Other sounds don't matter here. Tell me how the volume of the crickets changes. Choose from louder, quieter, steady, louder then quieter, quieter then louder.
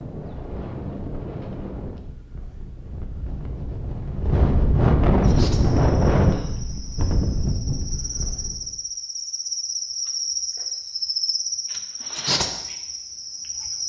louder.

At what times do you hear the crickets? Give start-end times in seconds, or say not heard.
5.2-13.8.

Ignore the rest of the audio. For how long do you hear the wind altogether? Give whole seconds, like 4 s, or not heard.
9 s.